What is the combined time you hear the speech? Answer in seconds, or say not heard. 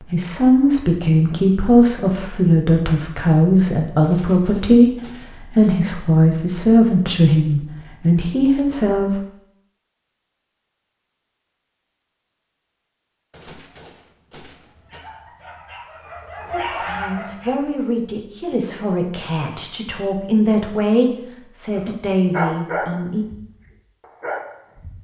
16 s.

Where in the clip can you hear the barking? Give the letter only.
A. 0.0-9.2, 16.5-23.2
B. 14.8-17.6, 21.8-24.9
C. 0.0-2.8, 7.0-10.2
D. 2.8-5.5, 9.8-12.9
B.